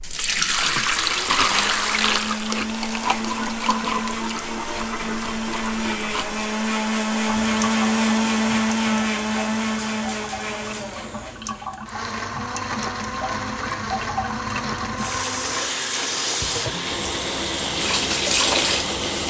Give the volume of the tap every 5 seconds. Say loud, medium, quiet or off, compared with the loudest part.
loud, medium, medium, loud.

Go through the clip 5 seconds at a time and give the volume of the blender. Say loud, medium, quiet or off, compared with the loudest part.
medium, loud, medium, medium.